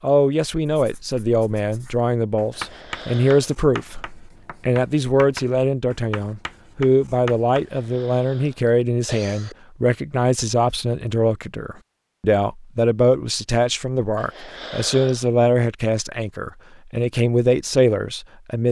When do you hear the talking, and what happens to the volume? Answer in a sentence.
The talking can be heard from 0.0 to 18.6 s, at a steady volume.